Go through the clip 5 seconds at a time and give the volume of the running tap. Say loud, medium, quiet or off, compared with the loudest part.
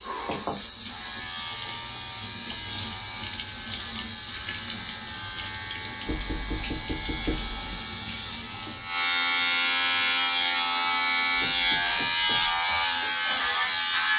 loud, loud, quiet.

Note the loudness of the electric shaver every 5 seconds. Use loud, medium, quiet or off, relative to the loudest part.
quiet, medium, loud.